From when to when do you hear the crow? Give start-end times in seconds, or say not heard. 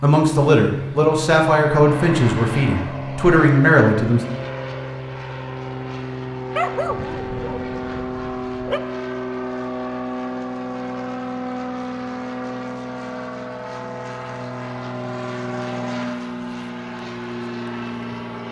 not heard.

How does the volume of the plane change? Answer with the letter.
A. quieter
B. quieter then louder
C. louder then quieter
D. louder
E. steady
E.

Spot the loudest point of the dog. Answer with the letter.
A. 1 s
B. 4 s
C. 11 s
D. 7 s
D.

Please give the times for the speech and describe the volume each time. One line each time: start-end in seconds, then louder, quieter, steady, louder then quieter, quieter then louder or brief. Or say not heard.
0.0-4.2 quieter then louder.